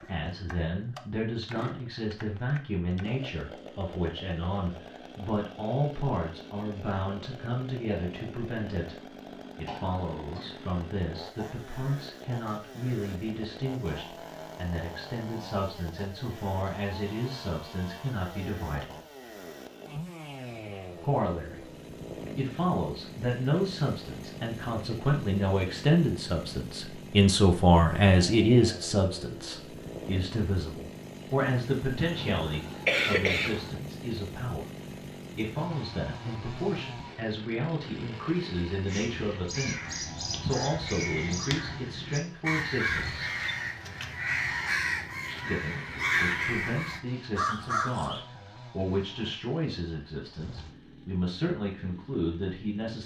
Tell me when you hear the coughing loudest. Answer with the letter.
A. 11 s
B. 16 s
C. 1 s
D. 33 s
D.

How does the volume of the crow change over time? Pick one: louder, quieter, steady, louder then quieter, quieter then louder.
louder.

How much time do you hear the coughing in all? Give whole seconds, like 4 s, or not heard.
3 s.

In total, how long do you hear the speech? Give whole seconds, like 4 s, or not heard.
49 s.